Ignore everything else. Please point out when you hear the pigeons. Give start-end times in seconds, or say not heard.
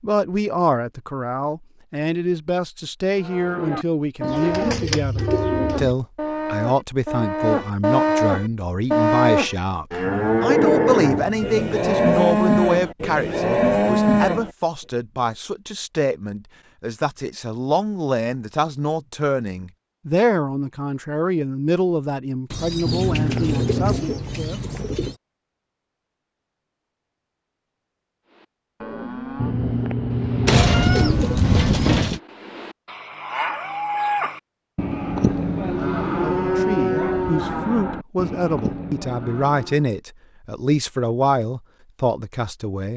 4.2-6.0, 22.5-25.1, 30.4-32.2.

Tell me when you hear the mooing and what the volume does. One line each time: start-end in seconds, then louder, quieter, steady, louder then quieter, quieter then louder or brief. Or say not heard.
3.1-14.5 louder
28.3-40.0 louder then quieter.